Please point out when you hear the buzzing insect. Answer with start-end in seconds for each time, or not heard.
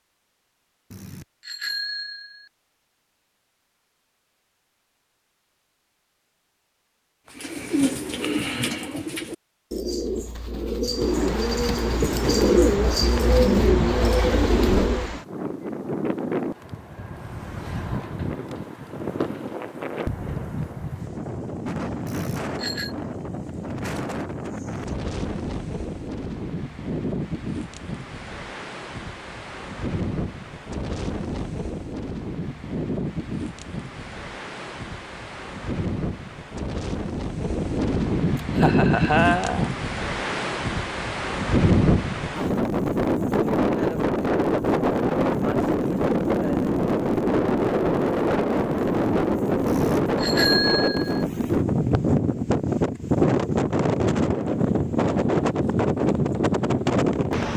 not heard.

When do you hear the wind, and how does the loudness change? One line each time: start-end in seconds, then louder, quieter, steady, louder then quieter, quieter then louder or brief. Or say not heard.
10.9-57.5 louder.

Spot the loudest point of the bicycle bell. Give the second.
51 s.